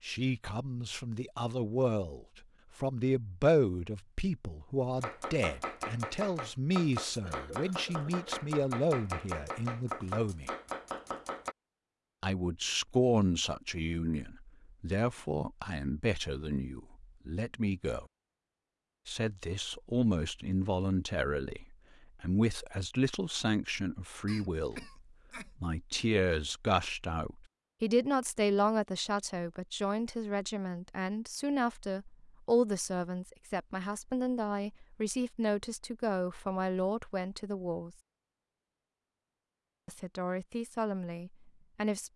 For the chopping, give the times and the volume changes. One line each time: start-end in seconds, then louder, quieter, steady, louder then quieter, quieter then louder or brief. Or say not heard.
5.0-11.6 steady.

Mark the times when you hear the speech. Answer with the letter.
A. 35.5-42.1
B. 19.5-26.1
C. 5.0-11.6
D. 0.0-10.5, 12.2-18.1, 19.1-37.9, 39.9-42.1
D.